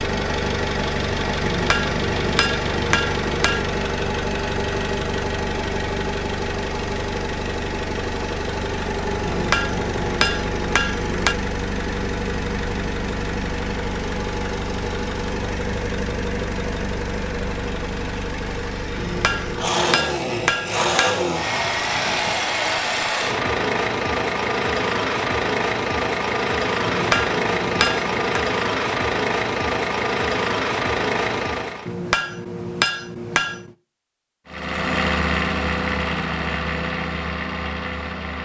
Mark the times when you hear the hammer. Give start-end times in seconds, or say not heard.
1.4-3.6, 9.2-11.3, 18.9-21.3, 26.9-28.4, 31.9-33.8.